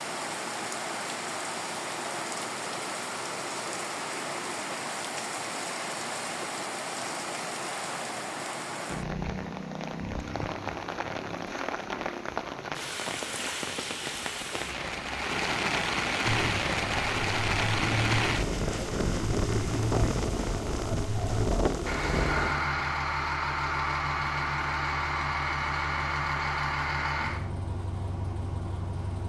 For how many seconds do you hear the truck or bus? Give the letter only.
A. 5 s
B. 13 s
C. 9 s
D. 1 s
B.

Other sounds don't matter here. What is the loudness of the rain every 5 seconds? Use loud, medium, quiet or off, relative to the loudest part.
medium, medium, medium, loud, loud, off.